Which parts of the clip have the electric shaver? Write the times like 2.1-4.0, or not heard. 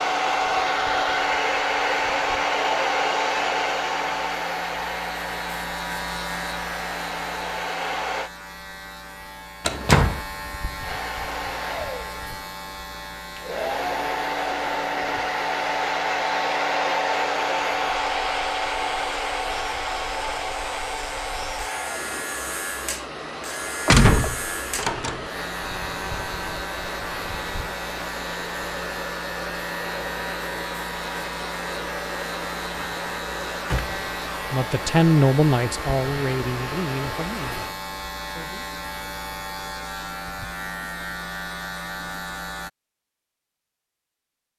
0.0-42.7.